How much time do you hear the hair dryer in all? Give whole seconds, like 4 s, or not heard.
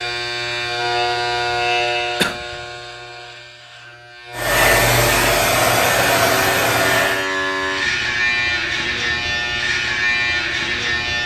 3 s.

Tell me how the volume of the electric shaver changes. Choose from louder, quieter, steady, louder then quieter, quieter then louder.
quieter then louder.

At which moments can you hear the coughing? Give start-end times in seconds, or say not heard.
1.8-2.6.